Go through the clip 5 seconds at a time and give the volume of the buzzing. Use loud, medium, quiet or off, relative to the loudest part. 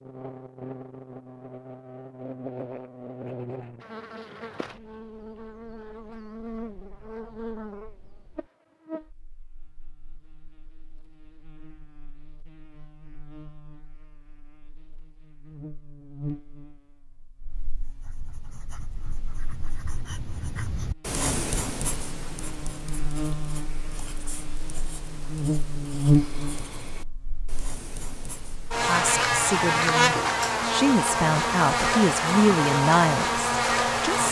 quiet, quiet, quiet, quiet, quiet, loud, loud.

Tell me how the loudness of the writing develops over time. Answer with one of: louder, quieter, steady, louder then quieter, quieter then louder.
louder then quieter.